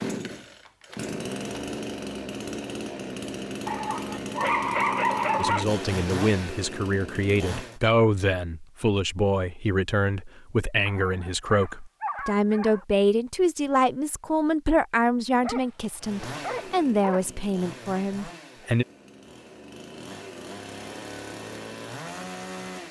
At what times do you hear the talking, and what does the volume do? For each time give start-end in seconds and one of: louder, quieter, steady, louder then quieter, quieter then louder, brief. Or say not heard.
5.3-18.9 steady.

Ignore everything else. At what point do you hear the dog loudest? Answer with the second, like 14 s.
5 s.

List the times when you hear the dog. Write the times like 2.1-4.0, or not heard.
3.6-5.7, 10.8-12.8, 15.4-17.2.